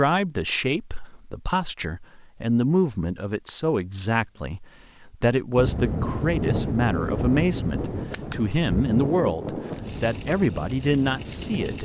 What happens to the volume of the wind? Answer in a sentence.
The volume of the wind goes down.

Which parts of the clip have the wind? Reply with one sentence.
You can hear the wind from 5.5 to 11.8 s.